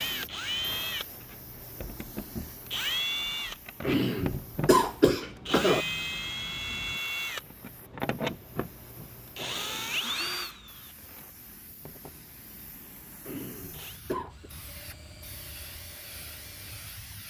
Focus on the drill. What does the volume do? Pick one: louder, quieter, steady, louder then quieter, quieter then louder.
quieter.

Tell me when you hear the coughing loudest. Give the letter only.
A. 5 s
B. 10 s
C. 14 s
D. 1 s
A.